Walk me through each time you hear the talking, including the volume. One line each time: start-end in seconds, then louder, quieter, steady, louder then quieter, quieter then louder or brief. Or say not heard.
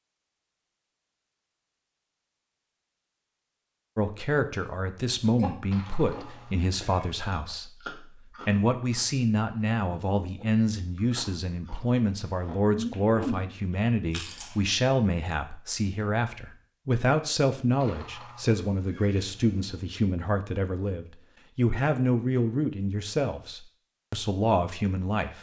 4.0-25.3 steady.